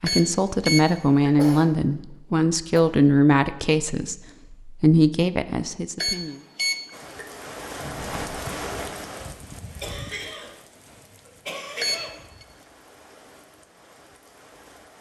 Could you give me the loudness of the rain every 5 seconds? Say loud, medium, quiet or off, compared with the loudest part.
off, loud, quiet.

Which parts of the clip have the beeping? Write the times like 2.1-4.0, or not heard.
0.1-1.4, 6.0-7.5, 11.8-12.4.